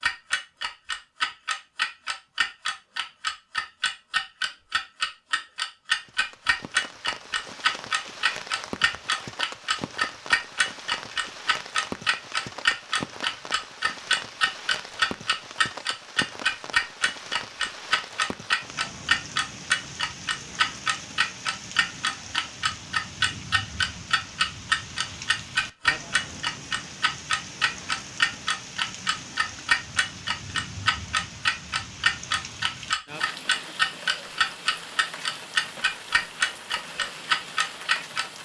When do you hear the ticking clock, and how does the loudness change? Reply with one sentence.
You can hear the ticking clock from 0.0 to 38.4 s, at a steady volume.